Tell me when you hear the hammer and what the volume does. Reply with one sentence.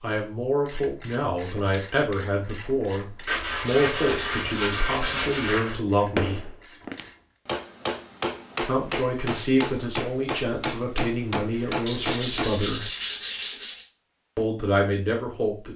You can hear the hammer from 6.1 to 12.5 s, at a steady volume.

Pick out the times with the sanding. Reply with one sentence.
The sanding can be heard from 3.2 to 5.8 s and from 11.8 to 13.8 s.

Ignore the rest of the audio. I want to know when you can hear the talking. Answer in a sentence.
You can hear the talking from 0.0 to 6.5 s, from 8.6 to 12.9 s and from 14.3 to 15.7 s.